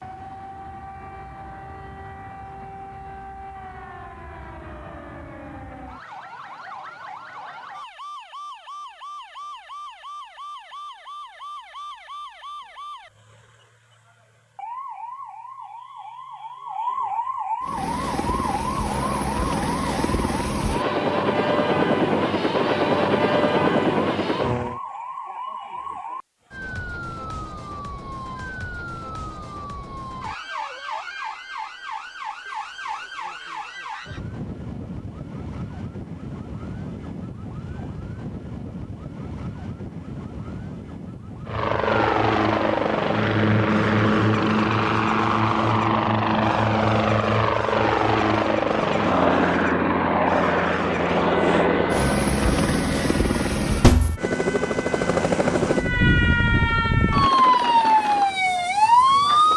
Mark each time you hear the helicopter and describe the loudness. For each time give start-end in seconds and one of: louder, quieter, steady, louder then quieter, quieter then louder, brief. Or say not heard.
17.6-24.8 louder
41.5-59.5 quieter.